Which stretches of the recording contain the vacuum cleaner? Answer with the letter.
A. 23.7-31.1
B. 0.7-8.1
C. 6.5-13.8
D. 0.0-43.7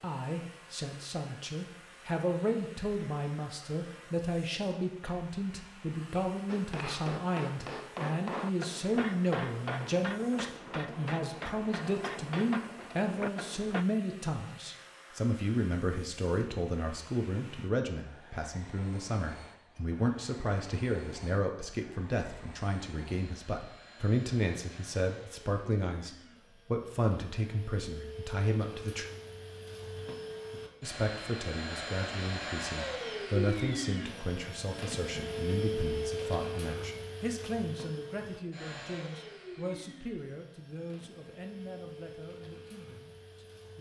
D.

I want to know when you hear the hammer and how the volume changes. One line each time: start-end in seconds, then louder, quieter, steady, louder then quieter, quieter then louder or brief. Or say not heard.
6.5-13.8 steady.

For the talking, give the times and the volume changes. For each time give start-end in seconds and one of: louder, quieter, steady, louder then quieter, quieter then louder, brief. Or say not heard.
0.0-29.1 steady
30.8-43.7 quieter.